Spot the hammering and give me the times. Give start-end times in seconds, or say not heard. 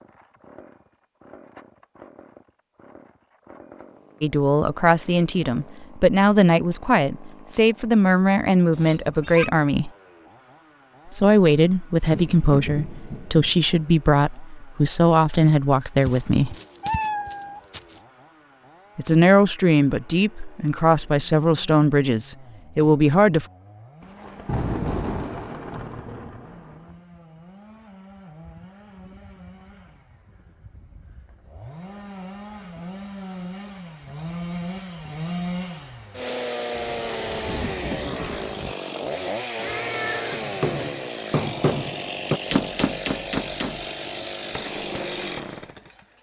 40.3-45.6.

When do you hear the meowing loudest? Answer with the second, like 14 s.
17 s.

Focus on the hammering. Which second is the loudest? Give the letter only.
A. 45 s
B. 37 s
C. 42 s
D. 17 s
C.